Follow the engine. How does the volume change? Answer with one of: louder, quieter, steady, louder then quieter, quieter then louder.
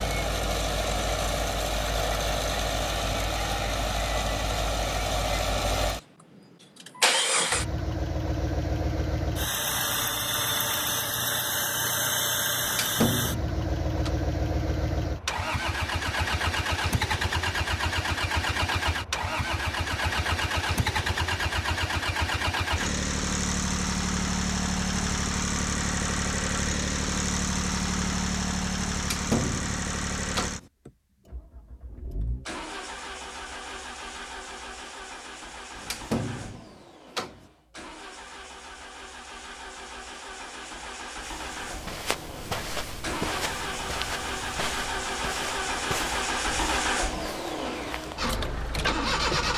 quieter then louder.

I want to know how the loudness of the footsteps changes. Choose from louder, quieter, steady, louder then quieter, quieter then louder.
quieter.